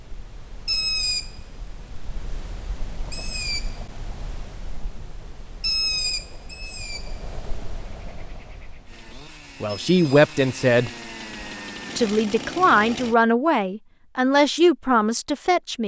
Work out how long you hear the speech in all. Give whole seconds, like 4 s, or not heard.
5 s.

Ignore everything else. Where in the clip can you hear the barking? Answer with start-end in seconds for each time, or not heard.
not heard.